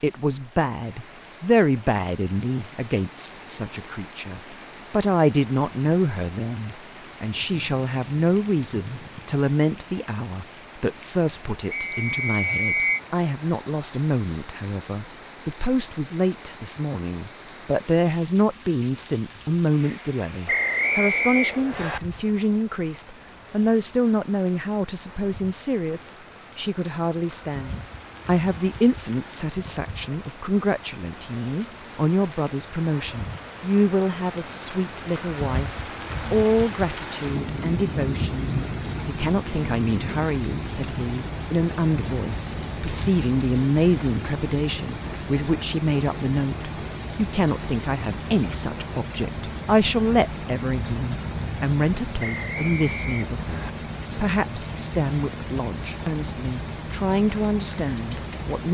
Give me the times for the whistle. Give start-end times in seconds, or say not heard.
11.7-13.0, 20.4-22.0, 52.2-53.8.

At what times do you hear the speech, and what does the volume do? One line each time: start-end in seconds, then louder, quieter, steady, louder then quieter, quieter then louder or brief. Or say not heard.
0.0-58.7 steady.